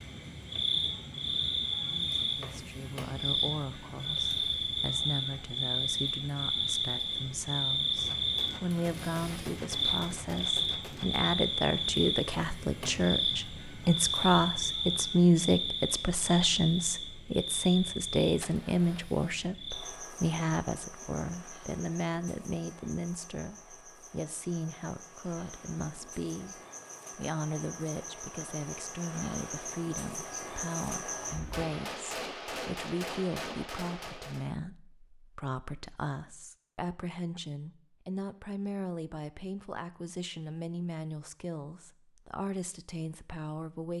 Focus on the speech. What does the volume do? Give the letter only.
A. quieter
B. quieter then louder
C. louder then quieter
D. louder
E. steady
C.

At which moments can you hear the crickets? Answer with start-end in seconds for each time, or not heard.
0.0-31.6.